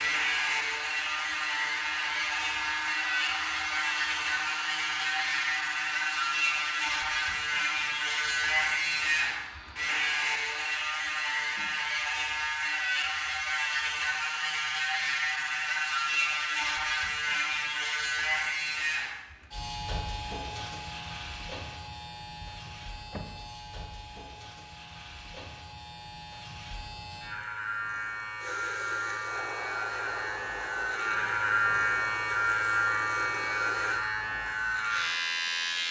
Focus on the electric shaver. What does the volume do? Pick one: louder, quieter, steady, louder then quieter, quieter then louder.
quieter then louder.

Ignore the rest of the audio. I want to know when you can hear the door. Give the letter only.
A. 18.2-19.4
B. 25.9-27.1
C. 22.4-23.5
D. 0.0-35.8
C.